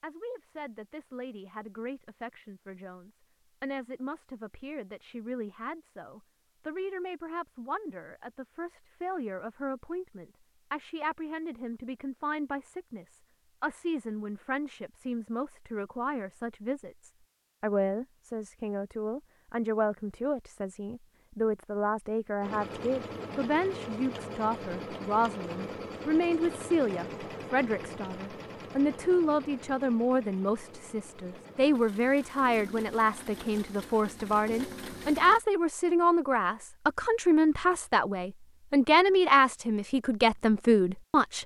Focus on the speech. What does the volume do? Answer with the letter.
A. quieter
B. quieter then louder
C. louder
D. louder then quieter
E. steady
C.